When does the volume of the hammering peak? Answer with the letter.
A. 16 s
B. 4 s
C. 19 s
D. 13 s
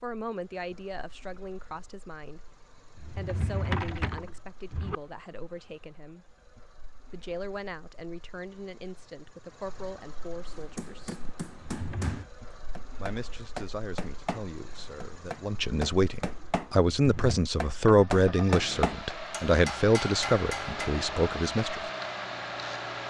C.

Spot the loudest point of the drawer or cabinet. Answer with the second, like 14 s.
4 s.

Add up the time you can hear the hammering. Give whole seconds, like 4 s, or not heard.
10 s.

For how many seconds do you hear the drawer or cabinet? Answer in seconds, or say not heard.
3 s.